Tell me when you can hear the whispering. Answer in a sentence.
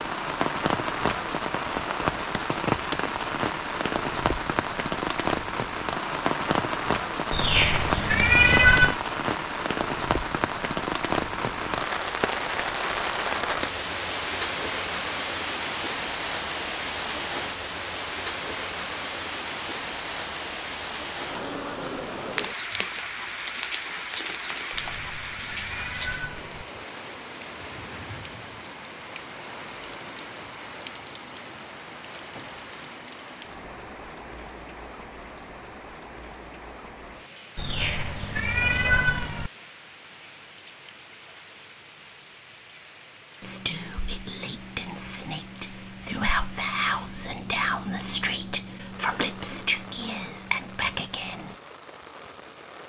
The whispering can be heard from 43.4 to 51.5 s.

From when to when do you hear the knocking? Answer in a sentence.
You can't hear the knocking here.